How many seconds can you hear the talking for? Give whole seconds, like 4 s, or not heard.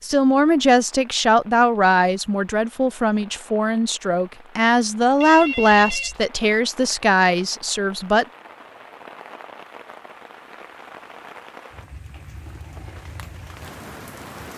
8 s.